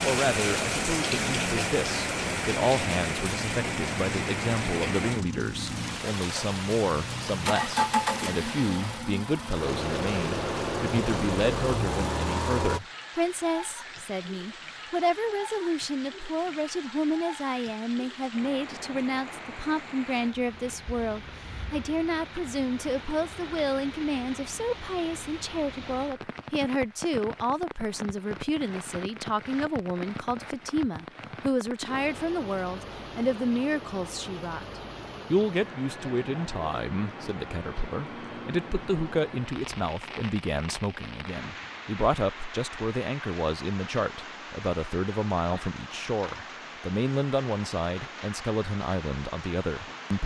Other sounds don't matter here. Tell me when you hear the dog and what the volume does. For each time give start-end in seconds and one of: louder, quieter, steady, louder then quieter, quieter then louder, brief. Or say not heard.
not heard.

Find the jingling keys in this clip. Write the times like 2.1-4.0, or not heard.
not heard.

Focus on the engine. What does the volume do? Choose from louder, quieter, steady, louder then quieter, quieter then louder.
louder.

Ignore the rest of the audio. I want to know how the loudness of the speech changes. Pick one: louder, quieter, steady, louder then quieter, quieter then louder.
steady.